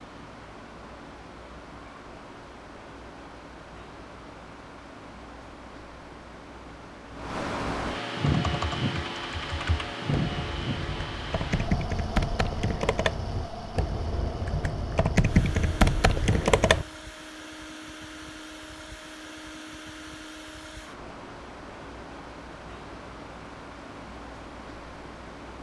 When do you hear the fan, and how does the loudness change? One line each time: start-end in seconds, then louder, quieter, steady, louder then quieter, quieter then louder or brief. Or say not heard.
0.0-25.5 louder then quieter.